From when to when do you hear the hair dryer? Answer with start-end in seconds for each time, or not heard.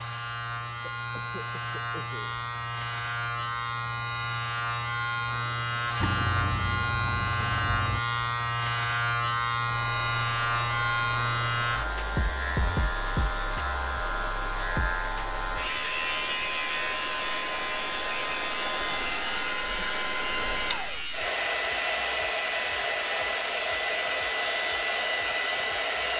9.8-26.1.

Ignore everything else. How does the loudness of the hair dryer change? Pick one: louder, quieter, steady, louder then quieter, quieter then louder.
louder.